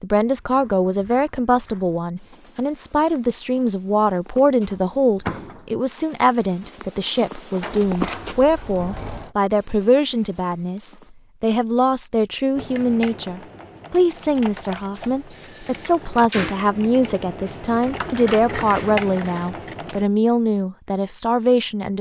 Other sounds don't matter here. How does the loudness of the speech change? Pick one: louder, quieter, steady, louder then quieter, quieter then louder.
steady.